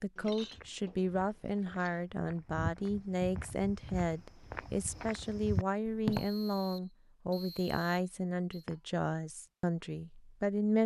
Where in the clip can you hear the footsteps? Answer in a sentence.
You can hear the footsteps from 0.5 to 6.2 s.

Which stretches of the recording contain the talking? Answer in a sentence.
The talking can be heard from 0.0 to 10.8 s.